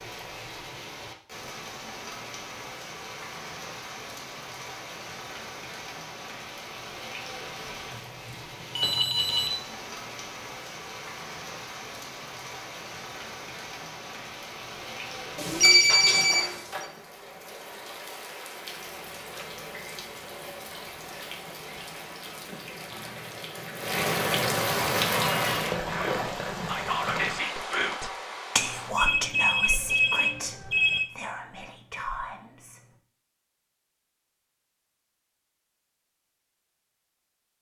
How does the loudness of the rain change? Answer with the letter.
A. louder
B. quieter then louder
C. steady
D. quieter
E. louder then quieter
A.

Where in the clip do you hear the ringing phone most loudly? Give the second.
16 s.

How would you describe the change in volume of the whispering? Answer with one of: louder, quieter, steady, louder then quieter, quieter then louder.
quieter.